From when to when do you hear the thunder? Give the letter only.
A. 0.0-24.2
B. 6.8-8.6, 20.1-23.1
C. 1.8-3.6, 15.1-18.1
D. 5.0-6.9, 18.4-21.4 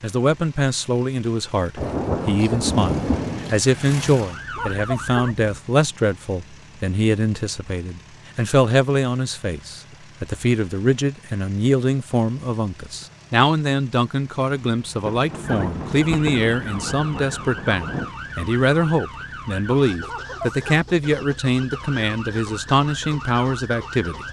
C.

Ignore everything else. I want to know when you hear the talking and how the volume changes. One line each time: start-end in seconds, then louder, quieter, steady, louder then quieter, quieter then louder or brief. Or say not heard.
0.0-24.2 steady.